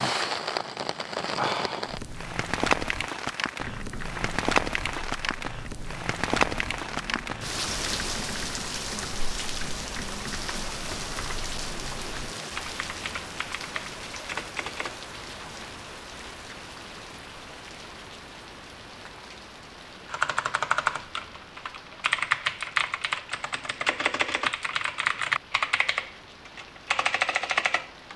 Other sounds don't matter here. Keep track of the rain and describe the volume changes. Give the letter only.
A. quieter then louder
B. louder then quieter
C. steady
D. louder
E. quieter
E.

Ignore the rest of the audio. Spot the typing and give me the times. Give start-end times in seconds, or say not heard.
3.6-14.9, 20.1-28.1.